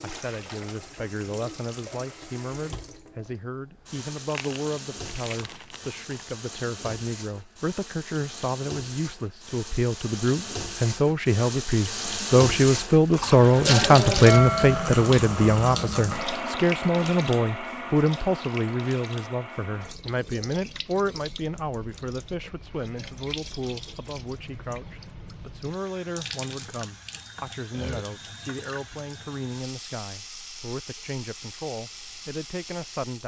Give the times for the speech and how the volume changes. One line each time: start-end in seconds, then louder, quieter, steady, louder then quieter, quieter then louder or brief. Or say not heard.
0.0-33.2 louder then quieter.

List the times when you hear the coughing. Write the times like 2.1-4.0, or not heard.
not heard.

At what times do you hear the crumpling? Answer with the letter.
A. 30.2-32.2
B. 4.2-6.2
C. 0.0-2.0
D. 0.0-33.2
B.